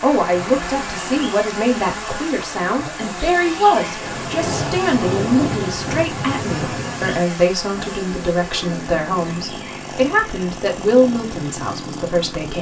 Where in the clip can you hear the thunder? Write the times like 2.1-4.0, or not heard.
3.4-7.2.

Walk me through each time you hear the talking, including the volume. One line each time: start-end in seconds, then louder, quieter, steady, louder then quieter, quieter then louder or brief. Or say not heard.
0.0-12.5 steady.